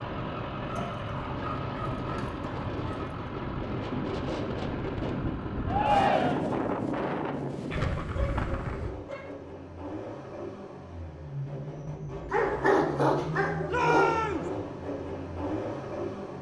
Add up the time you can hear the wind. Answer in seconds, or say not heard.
9 s.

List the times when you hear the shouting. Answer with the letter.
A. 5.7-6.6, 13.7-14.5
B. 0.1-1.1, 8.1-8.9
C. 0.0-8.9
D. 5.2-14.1
A.